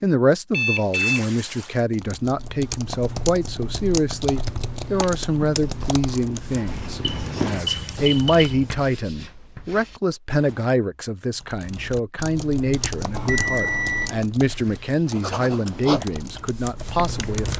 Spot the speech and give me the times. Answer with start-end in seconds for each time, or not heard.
0.0-17.5.